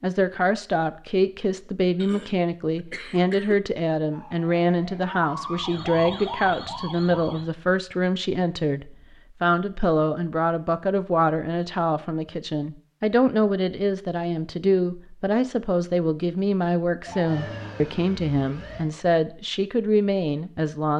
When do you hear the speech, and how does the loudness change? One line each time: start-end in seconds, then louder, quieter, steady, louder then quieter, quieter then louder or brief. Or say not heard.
0.0-20.9 steady.